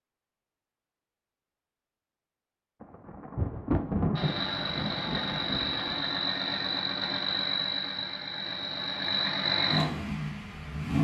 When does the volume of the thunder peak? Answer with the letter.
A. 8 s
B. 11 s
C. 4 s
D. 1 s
C.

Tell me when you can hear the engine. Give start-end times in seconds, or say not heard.
4.2-10.9.